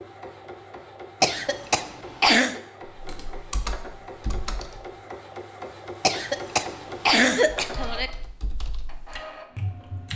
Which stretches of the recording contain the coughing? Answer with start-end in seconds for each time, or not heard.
1.2-2.6, 6.0-8.1.